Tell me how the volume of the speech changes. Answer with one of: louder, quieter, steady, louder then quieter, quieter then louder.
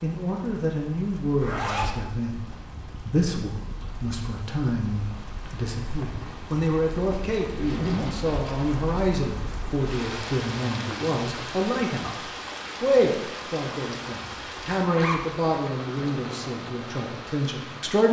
steady.